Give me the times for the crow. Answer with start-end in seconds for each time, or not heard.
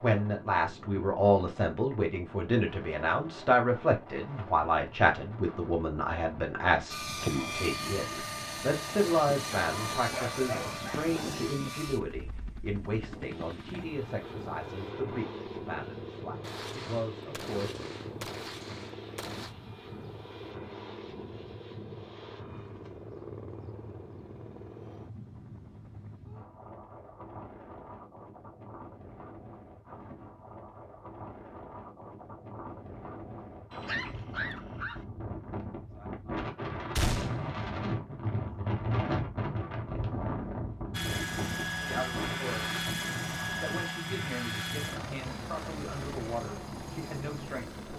not heard.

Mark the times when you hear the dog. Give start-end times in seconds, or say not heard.
9.7-11.6, 33.7-35.0.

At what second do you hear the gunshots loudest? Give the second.
37 s.